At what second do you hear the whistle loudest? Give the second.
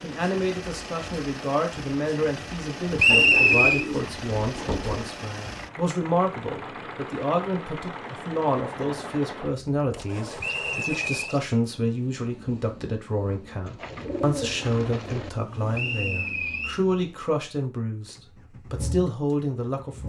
3 s.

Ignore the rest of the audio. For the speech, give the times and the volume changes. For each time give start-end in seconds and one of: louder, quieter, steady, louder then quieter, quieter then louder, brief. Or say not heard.
0.0-20.0 steady.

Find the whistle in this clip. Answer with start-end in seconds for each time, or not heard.
3.0-3.9, 10.4-11.3, 15.7-16.8.